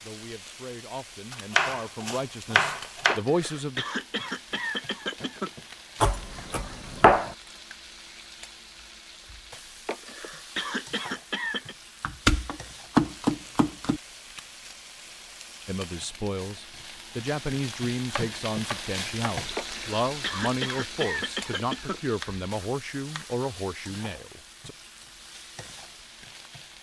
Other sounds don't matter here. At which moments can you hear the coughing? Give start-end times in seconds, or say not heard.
3.0-5.5, 9.8-11.8, 19.6-22.0.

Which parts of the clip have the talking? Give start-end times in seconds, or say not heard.
0.0-3.9, 15.7-24.8.